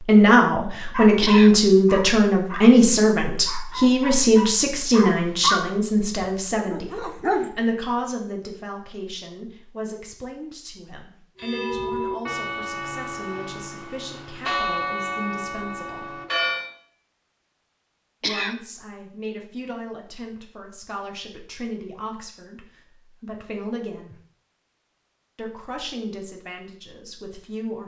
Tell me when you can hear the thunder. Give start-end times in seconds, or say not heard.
not heard.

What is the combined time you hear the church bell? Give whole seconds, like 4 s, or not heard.
5 s.